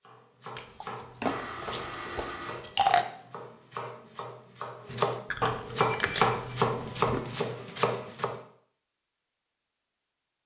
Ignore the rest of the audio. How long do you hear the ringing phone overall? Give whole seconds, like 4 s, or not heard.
2 s.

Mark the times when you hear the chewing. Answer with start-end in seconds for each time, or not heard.
0.6-3.0, 5.3-7.2.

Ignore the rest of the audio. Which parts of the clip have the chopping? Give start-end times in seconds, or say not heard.
0.0-8.4.